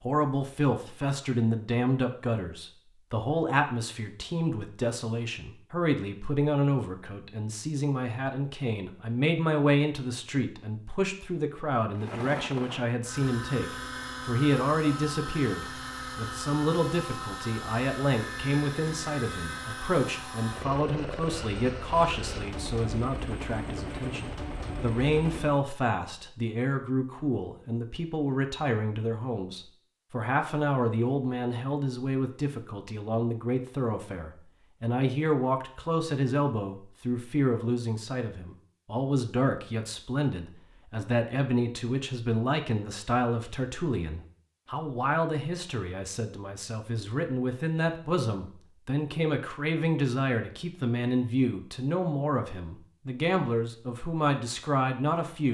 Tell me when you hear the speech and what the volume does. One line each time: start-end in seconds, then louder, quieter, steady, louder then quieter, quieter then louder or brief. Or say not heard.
0.0-55.4 steady.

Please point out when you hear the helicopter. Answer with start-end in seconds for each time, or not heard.
11.9-25.6.